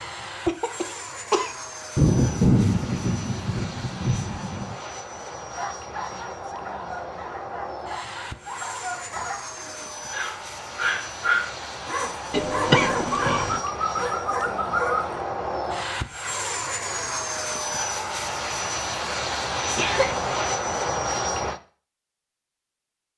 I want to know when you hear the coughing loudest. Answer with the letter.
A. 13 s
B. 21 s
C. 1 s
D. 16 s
A.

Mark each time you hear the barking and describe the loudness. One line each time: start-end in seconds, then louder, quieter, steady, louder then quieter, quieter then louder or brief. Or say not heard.
5.5-15.2 louder.